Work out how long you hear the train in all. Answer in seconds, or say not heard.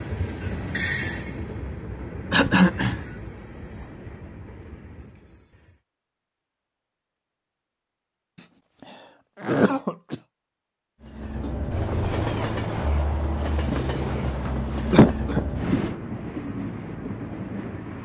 13 s.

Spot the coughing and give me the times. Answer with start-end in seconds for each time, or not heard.
2.3-3.0, 9.4-10.2, 14.9-15.4.